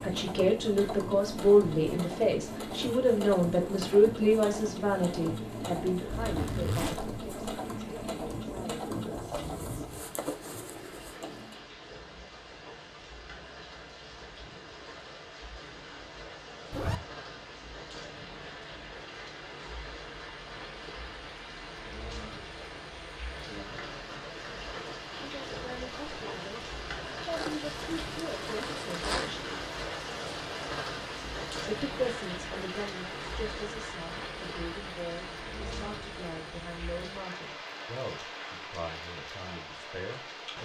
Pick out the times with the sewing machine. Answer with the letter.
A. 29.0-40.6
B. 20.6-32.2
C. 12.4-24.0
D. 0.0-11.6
D.